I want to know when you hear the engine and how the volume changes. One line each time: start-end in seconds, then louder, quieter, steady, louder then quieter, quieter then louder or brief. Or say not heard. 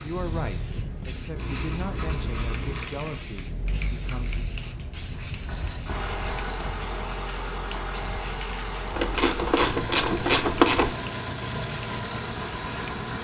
0.0-13.1 louder.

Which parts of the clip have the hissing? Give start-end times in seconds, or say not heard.
0.0-13.0.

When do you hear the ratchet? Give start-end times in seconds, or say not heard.
1.4-2.9, 5.0-6.9, 8.9-10.9.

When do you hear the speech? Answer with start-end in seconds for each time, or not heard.
0.0-4.5.